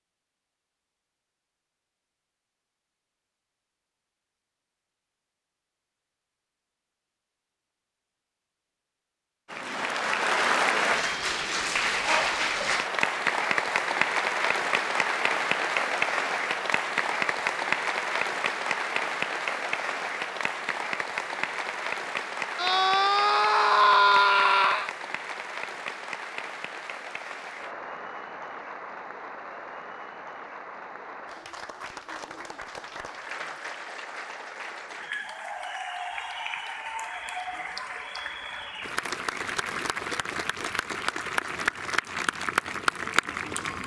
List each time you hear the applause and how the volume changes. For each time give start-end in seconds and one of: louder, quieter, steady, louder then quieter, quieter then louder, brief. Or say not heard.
9.5-43.8 quieter then louder.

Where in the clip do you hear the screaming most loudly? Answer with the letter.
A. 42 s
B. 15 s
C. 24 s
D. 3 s
C.